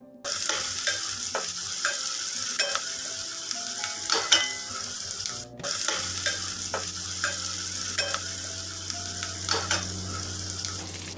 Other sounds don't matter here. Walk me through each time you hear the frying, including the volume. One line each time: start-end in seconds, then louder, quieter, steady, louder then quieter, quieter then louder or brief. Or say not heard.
0.2-11.1 steady.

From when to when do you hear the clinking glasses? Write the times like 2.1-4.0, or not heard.
3.8-4.7.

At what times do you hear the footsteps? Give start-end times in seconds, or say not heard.
not heard.